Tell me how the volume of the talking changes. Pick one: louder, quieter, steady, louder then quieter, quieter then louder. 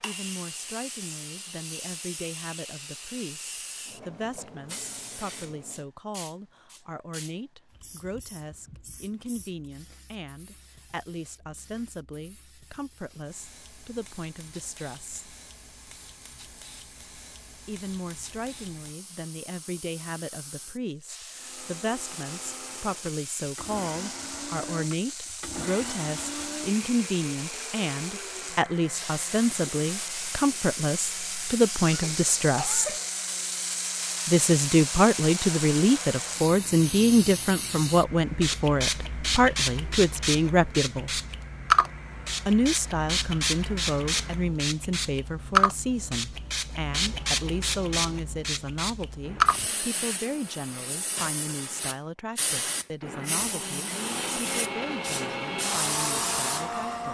louder then quieter.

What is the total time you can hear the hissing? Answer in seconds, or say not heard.
57 s.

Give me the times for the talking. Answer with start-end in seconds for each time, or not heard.
0.0-15.3, 17.6-33.0, 34.2-41.2, 42.5-57.0.